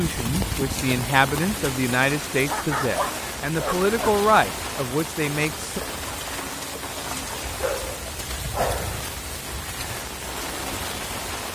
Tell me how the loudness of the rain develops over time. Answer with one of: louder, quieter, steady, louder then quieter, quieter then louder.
steady.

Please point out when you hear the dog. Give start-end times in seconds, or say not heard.
2.5-4.2, 7.6-9.1.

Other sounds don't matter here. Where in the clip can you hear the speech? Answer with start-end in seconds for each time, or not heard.
0.0-5.8.